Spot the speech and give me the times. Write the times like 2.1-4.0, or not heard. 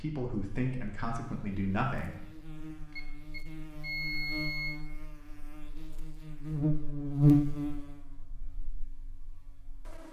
0.0-2.5.